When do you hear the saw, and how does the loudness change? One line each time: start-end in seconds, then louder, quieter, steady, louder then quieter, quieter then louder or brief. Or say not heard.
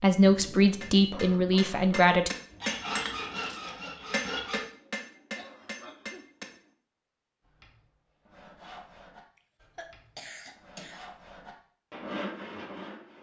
2.5-4.6 brief
7.4-13.1 quieter then louder.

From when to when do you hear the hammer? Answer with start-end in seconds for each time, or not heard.
0.8-6.5.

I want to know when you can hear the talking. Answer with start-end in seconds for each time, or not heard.
0.0-2.3.